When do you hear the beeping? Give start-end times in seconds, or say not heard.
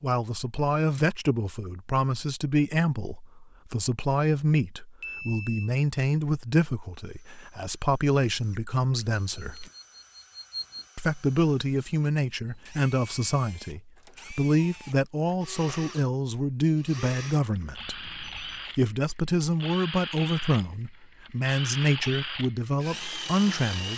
5.0-5.7, 9.3-10.8, 17.7-18.6.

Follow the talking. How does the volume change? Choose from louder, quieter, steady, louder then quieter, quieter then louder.
steady.